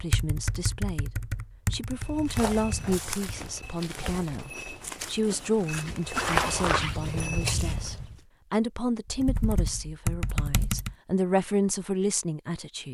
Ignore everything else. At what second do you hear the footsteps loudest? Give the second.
6 s.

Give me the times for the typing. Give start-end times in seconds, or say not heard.
0.0-3.5, 9.2-10.9.